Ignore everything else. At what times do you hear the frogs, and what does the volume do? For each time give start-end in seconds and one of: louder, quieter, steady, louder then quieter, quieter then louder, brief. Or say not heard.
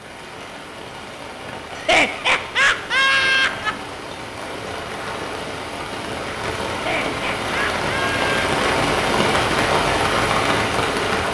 not heard.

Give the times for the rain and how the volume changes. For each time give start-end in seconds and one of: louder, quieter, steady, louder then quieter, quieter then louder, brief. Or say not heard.
0.0-11.2 louder.